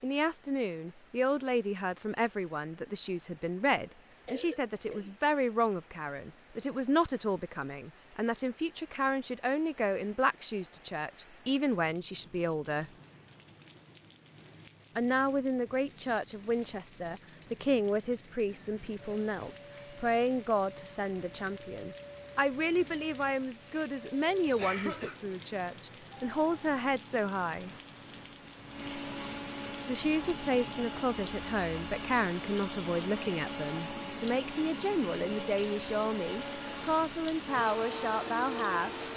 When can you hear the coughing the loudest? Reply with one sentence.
The loudest moment of the coughing is at 25 seconds.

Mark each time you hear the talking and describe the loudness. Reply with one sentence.
You can hear the talking from 0.0 to 12.9 s, at a steady volume; from 14.9 to 27.7 s, at a steady volume; and from 29.9 to 39.1 s, at a steady volume.